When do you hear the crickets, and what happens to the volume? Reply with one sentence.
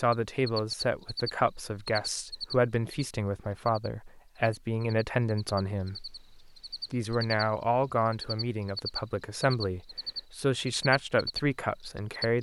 You can hear the crickets from 0.1 to 12.3 s, getting quieter then louder.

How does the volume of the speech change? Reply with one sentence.
The volume of the speech stays about the same.